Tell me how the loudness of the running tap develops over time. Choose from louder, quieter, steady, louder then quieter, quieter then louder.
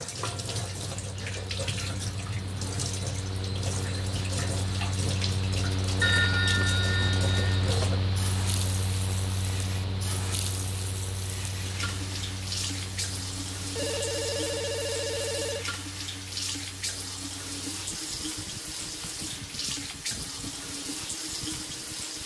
steady.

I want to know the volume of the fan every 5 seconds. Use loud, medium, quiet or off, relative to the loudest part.
medium, loud, medium, quiet, quiet.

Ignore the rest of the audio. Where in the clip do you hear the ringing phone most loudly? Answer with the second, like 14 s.
6 s.